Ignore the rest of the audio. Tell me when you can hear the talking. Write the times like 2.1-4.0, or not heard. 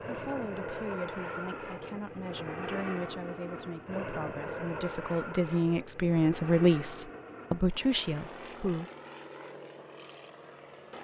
0.1-8.9.